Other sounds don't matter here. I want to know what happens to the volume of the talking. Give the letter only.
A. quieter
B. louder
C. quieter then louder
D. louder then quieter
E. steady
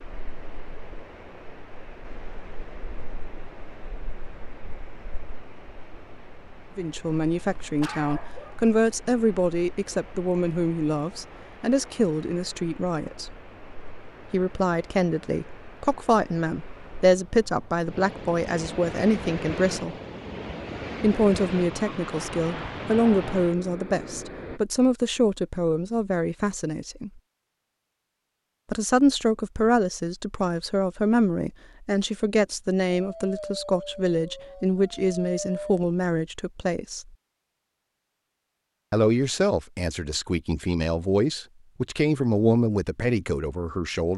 E.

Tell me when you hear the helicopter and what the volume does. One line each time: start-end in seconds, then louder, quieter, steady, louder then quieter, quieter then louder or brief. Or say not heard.
not heard.